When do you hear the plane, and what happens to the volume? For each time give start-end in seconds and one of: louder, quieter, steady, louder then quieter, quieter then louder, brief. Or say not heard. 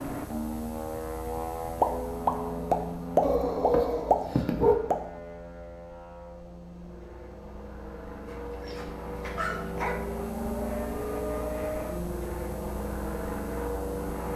0.0-14.3 quieter then louder.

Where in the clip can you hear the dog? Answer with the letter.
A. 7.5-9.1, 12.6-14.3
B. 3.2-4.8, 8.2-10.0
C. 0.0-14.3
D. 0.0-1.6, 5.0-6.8
B.